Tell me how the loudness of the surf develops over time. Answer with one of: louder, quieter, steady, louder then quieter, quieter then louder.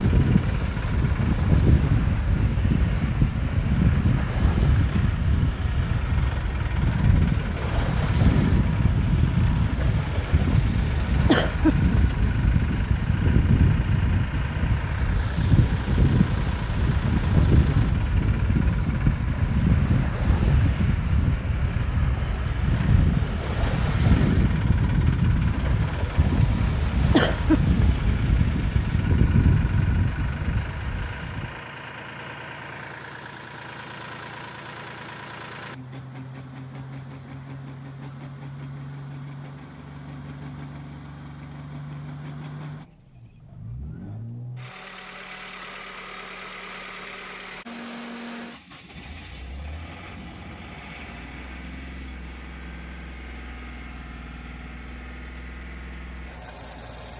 steady.